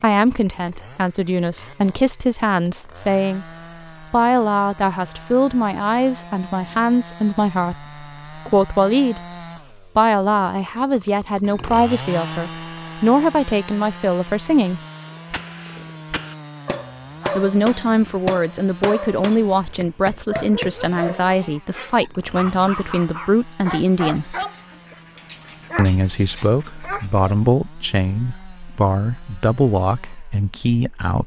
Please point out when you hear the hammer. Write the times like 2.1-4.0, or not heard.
15.1-20.9.